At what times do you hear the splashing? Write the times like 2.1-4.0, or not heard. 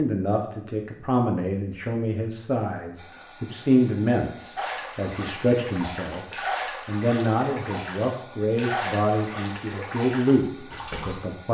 4.5-11.2.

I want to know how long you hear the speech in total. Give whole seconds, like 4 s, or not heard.
11 s.